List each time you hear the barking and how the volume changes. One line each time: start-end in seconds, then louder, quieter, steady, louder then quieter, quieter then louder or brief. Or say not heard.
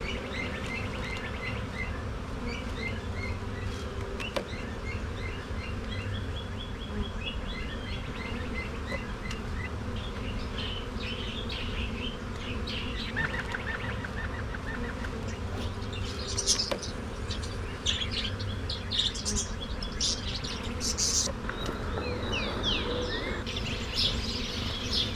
not heard.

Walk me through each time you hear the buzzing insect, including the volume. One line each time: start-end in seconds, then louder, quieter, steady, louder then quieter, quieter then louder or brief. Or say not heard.
0.0-25.1 steady.